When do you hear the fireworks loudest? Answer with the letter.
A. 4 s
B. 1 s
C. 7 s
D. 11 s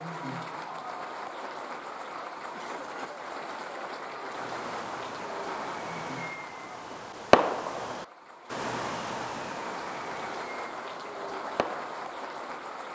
C.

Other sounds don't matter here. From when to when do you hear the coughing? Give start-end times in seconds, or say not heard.
2.5-3.3.